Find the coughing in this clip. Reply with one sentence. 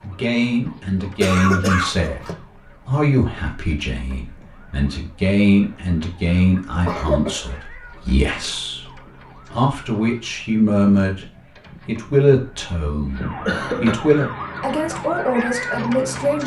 You can hear the coughing from 1.2 to 2.4 s, from 6.8 to 7.5 s and from 13.4 to 14.1 s.